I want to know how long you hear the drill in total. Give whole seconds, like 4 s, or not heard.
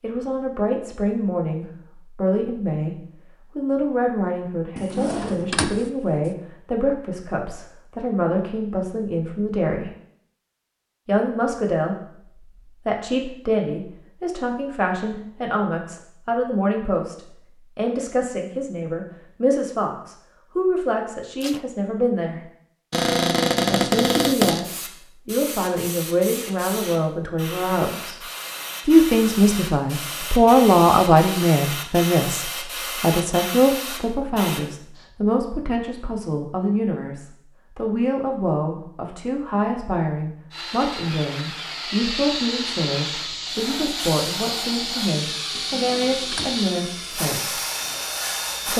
8 s.